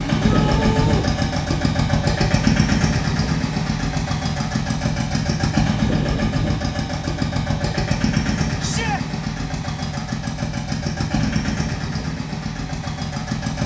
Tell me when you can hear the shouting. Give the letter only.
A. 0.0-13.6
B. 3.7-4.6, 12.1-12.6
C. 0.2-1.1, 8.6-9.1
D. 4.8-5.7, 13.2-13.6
C.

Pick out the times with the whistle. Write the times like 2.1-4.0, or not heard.
not heard.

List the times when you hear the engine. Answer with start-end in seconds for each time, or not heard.
0.0-13.6.